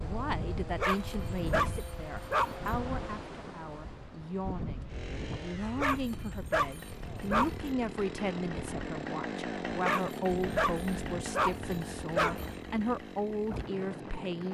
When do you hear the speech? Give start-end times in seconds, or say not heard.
0.0-14.5.